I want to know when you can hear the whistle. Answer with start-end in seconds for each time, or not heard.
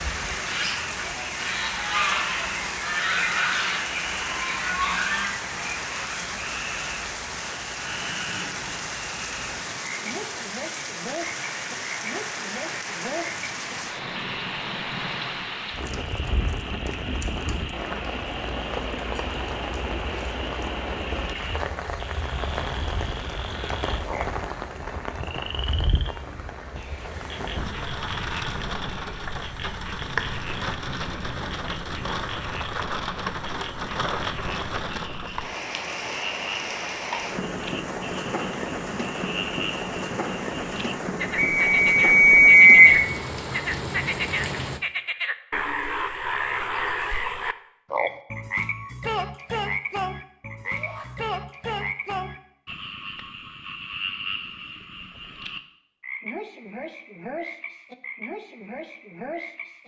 41.4-42.9.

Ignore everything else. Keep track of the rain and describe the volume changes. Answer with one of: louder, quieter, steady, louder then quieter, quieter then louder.
steady.